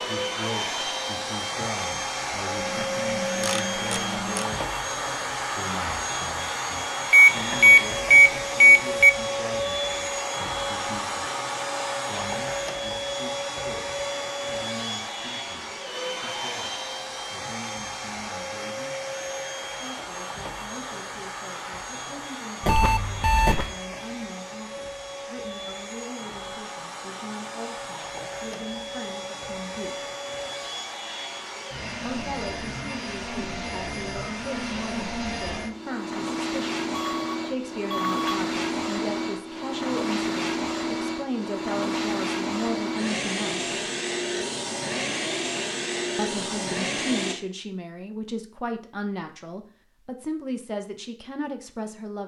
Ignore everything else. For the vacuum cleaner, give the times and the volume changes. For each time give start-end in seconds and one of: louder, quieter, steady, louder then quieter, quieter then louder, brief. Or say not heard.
0.0-47.4 quieter then louder.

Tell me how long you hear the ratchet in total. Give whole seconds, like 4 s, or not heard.
2 s.